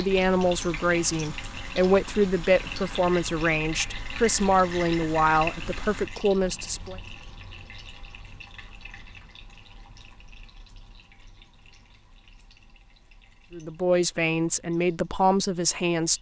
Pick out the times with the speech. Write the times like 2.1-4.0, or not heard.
0.0-7.0, 13.5-16.1.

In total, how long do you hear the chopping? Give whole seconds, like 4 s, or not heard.
not heard.